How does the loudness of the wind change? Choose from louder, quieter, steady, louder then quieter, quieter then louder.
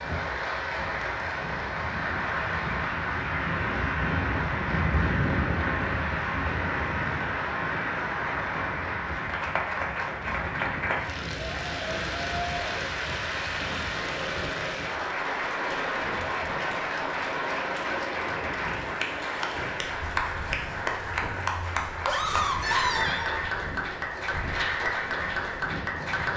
quieter.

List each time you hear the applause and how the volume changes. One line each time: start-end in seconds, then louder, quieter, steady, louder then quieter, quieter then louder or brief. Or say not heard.
0.0-26.3 steady.